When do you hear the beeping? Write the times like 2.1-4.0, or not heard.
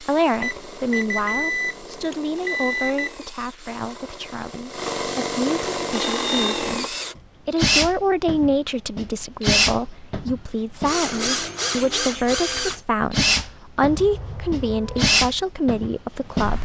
0.4-3.1, 6.0-6.8, 13.8-15.1.